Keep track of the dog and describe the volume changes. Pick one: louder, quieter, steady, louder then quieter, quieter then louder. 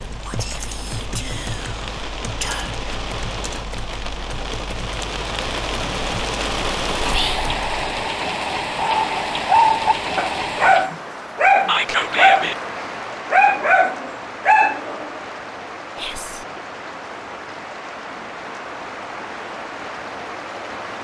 steady.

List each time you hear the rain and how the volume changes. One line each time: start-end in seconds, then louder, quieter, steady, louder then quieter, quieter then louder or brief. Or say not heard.
0.0-20.9 louder then quieter.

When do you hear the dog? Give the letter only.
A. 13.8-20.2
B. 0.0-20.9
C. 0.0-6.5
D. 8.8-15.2
D.